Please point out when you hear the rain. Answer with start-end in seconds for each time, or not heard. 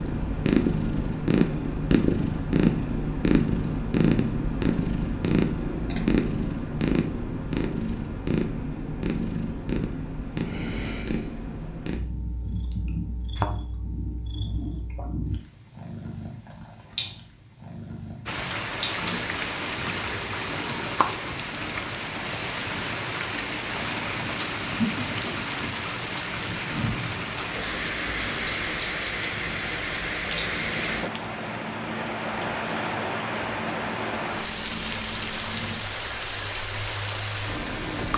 18.2-38.1.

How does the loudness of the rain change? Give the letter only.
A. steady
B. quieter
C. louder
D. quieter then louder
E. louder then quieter
A.